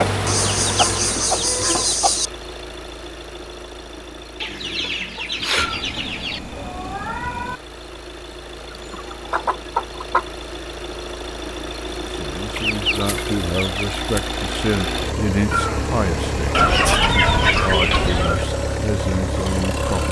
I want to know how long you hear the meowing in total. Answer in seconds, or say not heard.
4 s.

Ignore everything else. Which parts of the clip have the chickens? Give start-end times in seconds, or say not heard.
0.2-2.3, 4.4-6.4, 8.7-10.2, 12.6-14.0, 16.5-18.4.